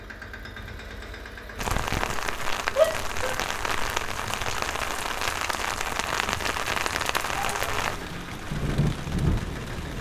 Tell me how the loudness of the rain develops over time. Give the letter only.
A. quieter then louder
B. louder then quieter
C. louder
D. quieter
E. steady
E.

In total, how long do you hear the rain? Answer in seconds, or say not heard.
8 s.